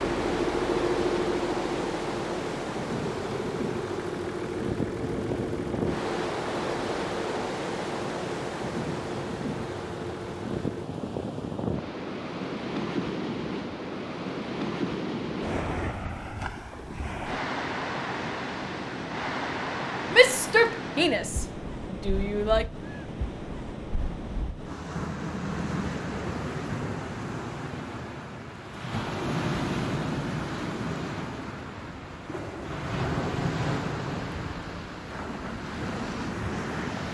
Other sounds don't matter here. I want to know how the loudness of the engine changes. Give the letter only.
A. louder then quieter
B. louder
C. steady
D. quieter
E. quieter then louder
D.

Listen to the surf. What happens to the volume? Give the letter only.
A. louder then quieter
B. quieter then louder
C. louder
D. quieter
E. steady
E.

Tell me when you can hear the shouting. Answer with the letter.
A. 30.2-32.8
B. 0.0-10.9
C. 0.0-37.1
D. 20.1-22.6
D.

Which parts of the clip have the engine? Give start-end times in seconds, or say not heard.
0.0-10.9.